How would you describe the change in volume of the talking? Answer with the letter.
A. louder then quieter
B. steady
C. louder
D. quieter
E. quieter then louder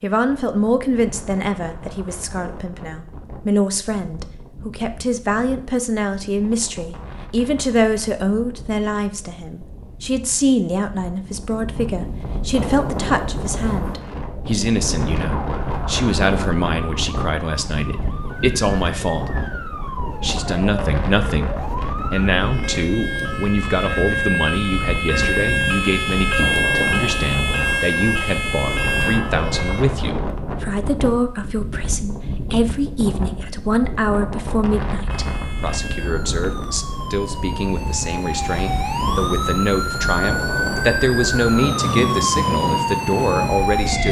B.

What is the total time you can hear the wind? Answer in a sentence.
You can hear the wind for 44 seconds altogether.